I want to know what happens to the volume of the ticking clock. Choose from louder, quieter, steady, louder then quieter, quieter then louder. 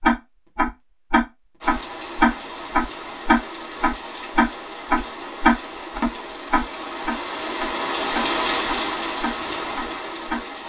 quieter.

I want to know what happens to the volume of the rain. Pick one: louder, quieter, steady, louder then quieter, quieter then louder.
louder.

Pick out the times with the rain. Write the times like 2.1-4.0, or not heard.
1.6-10.6.